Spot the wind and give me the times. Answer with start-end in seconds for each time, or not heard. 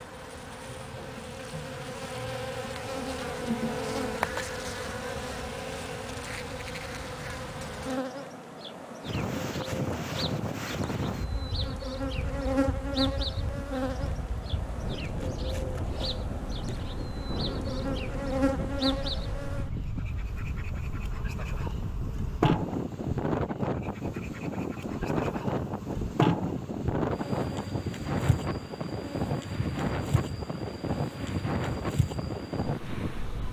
9.0-33.4.